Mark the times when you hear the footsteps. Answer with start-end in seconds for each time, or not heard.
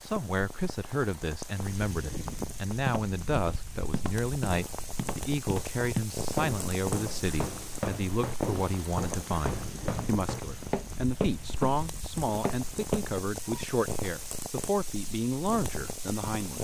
2.8-13.1.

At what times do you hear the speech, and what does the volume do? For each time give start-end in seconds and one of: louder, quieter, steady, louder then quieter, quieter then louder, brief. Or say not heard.
0.0-16.6 steady.